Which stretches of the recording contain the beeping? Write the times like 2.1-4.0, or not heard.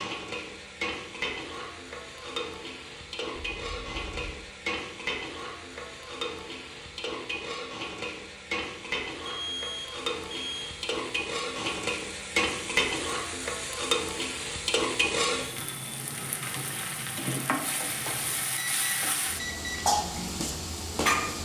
3.5-4.4, 9.2-10.8, 17.9-19.8.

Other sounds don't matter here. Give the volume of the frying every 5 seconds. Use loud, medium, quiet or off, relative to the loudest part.
medium, medium, loud, loud, loud.